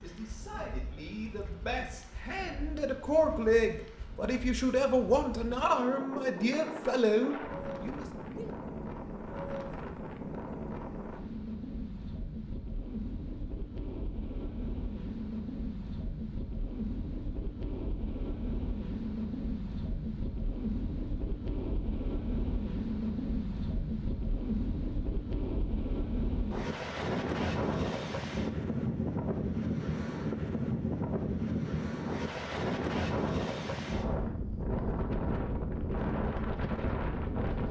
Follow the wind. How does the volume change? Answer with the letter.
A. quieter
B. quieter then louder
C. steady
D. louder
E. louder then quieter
D.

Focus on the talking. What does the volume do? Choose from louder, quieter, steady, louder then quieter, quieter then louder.
louder.